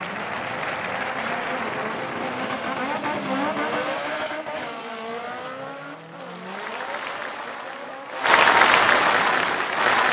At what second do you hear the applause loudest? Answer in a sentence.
The volume of the applause peaks at 9 seconds.